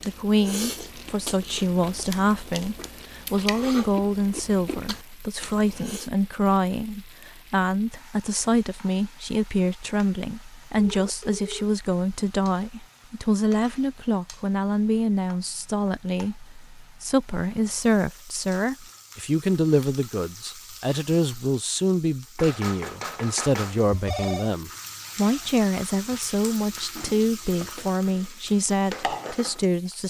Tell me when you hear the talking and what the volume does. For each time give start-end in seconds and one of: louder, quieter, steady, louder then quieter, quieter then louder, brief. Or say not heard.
0.1-30.0 steady.